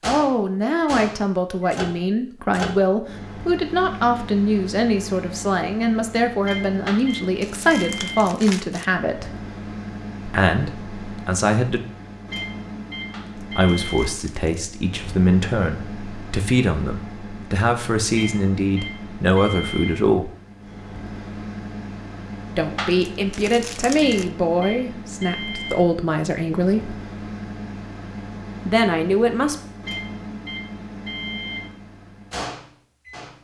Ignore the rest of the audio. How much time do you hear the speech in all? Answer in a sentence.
You can hear the speech for 23 seconds altogether.